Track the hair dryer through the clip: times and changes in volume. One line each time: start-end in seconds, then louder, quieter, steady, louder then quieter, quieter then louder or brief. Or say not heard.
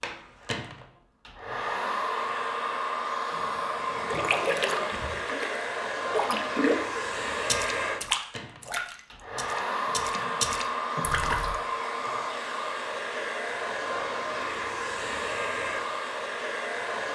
0.0-17.0 steady.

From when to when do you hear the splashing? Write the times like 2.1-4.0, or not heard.
4.0-11.6.